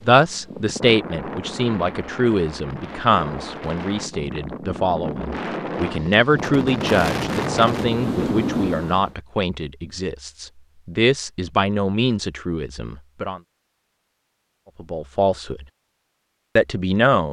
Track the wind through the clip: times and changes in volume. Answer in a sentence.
You can hear the wind from 0.0 to 9.2 s, getting louder.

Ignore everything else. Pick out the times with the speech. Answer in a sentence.
You can hear the speech from 0.1 to 13.4 s, from 14.8 to 15.7 s and from 16.6 to 17.2 s.